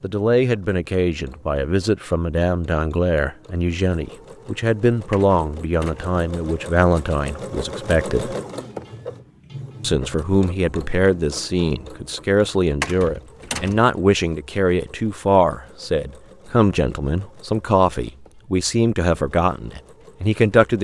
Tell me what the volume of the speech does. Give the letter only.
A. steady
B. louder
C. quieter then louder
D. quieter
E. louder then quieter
A.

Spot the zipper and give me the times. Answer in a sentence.
You can't hear the zipper here.